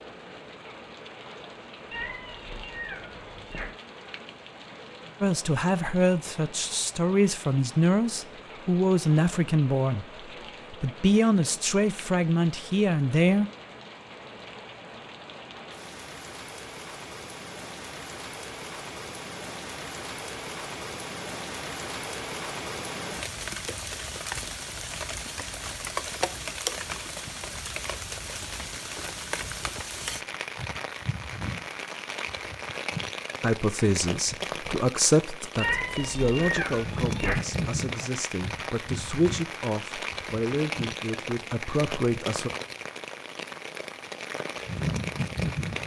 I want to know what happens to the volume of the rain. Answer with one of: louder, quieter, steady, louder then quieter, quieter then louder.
louder.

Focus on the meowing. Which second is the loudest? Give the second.
36 s.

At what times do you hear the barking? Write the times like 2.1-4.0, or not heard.
not heard.